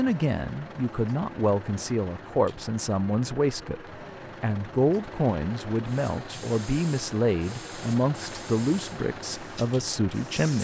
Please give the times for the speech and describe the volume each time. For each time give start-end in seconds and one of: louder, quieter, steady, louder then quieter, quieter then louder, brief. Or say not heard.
0.0-10.5 steady.